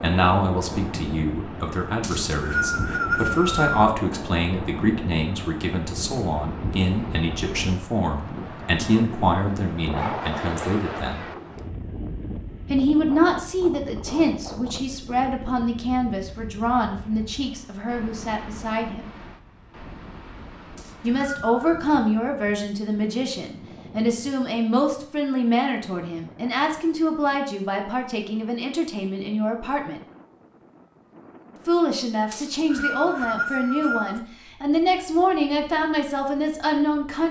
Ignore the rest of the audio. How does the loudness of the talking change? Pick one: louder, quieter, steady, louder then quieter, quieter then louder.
steady.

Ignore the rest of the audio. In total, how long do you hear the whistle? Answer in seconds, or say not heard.
5 s.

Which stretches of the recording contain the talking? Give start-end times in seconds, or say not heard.
0.0-11.2, 12.7-19.1, 21.0-30.0, 31.6-37.2.